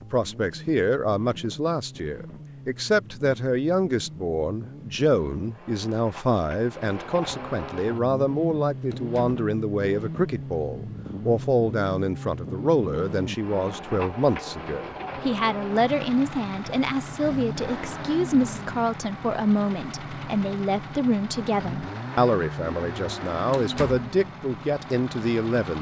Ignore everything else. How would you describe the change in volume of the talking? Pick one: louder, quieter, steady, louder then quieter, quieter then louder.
steady.